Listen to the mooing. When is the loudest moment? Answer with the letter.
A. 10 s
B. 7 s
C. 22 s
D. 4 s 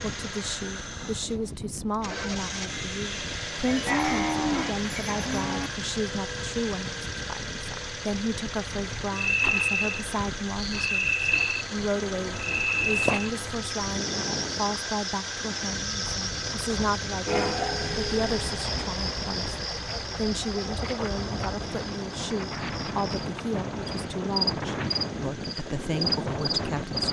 D.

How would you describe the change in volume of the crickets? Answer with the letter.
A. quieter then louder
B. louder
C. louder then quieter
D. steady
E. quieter
A.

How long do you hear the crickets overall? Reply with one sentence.
The crickets can be heard for 18 seconds in total.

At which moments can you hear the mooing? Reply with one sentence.
The mooing can be heard from 3.6 to 5.7 s.